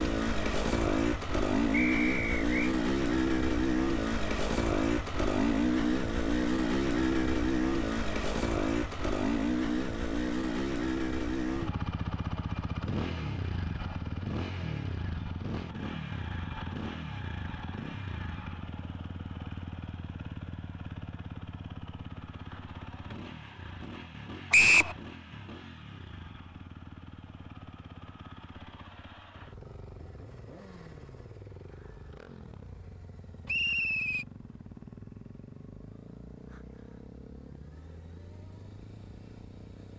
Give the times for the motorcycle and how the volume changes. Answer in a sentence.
The motorcycle can be heard from 0.0 to 39.9 s, getting quieter.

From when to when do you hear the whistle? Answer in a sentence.
The whistle can be heard from 1.7 to 2.5 s, from 24.5 to 24.9 s and from 33.5 to 34.2 s.